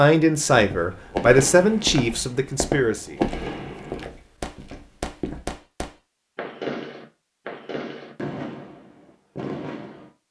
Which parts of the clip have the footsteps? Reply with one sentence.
You can hear the footsteps from 0.5 to 5.5 s.